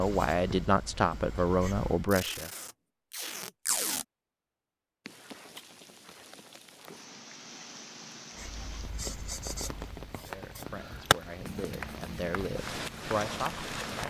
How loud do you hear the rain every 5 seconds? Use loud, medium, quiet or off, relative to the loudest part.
off, medium, loud.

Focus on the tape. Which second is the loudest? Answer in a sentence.
The volume of the tape peaks at 4 seconds.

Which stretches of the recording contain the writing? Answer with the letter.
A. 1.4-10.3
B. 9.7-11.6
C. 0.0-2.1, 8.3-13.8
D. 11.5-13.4
C.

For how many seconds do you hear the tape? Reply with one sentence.
You can hear the tape for 2 seconds altogether.